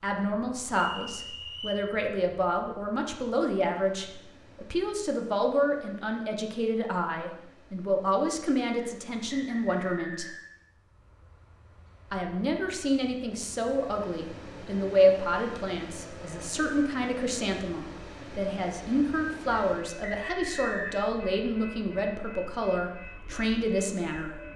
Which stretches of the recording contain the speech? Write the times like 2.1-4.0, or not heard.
0.0-10.3, 12.1-24.4.